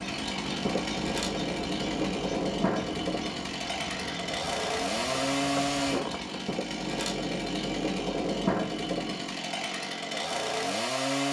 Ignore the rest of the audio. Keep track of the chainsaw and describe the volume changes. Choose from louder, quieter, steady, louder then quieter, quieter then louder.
steady.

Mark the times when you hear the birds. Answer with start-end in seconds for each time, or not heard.
0.0-6.4.